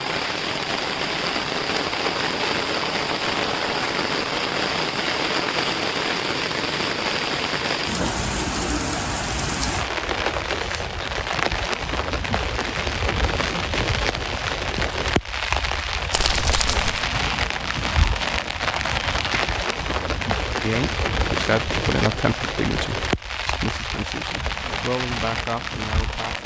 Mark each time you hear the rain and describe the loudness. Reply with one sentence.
The rain can be heard from 0.0 to 26.4 s, at a steady volume.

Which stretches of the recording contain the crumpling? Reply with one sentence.
You can hear the crumpling from 16.1 to 17.1 s.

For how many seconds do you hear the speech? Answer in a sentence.
The speech can be heard for 6 seconds in total.